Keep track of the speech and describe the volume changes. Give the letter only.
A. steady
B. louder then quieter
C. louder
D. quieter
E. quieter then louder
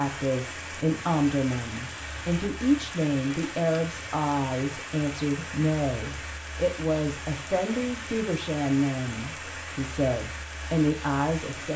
A.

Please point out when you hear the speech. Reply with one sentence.
You can hear the speech from 0.0 to 11.7 s.